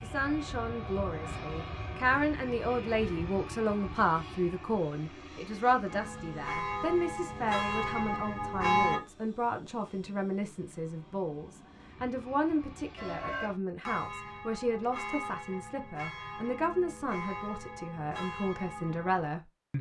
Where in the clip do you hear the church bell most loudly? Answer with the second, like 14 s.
9 s.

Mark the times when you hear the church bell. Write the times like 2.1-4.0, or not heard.
5.8-9.0, 12.9-19.3.